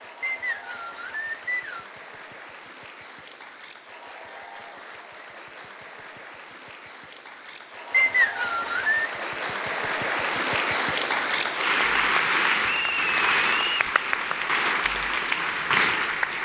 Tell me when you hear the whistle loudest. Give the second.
8 s.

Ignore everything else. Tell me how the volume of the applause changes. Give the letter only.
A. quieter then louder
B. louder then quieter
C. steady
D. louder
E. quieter
D.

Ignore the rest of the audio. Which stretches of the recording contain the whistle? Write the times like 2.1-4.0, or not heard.
0.2-1.9, 7.9-9.1, 12.7-13.9.